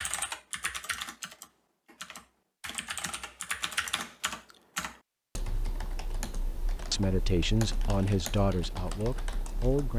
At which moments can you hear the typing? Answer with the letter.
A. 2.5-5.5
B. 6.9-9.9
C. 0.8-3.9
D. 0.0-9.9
D.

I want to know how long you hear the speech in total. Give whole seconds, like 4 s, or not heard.
3 s.